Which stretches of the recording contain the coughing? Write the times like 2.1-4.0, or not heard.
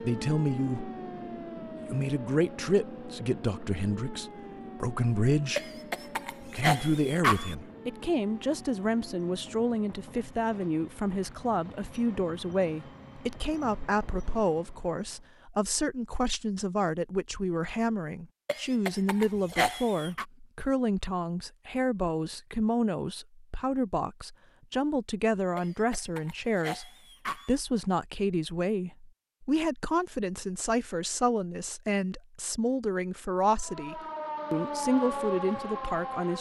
5.5-7.5, 18.4-20.2, 25.6-27.6.